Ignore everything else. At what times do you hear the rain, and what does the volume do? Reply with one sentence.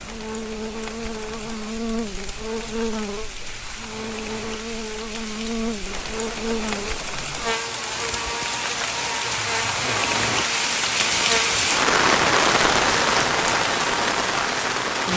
You can hear the rain from 0.0 to 15.1 s, getting louder.